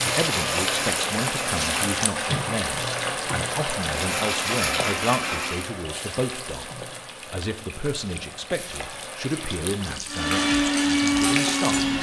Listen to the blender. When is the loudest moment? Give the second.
11 s.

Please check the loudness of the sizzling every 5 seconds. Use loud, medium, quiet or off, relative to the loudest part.
loud, medium, loud.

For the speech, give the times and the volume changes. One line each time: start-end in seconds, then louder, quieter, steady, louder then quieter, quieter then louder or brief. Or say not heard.
0.0-11.8 steady.